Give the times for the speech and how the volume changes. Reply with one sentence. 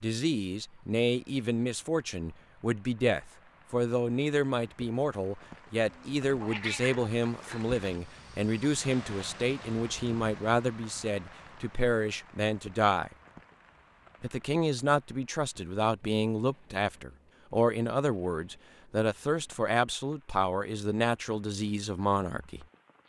The speech can be heard from 0.0 to 13.2 s, at a steady volume; and from 14.2 to 22.6 s, at a steady volume.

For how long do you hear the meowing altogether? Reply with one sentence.
The meowing can be heard for 2 seconds in total.